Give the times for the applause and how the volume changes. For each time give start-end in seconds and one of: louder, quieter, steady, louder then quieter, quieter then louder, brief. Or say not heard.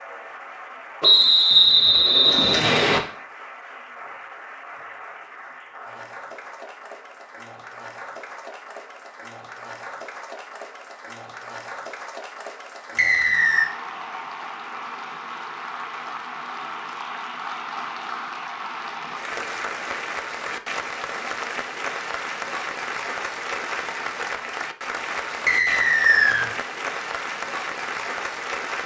0.0-28.8 louder.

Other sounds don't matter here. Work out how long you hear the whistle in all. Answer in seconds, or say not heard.
4 s.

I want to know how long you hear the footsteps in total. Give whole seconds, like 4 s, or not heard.
not heard.